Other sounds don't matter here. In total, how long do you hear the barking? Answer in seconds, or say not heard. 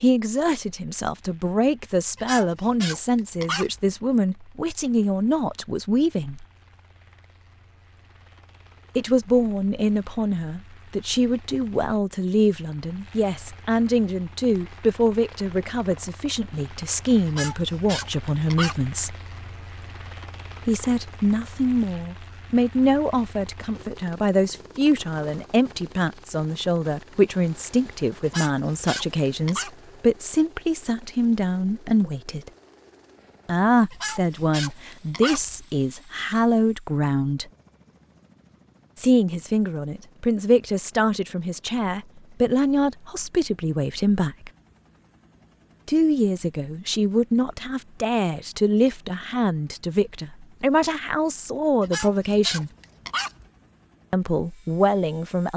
8 s.